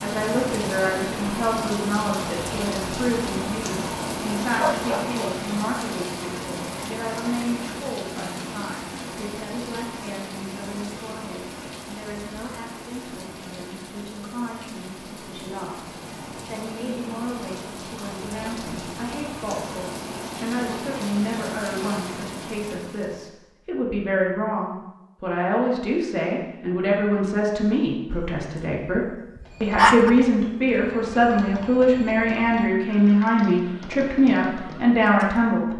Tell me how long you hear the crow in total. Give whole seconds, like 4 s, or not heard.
not heard.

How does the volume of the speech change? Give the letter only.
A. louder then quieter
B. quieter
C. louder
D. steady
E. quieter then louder
E.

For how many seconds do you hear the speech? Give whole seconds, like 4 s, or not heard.
36 s.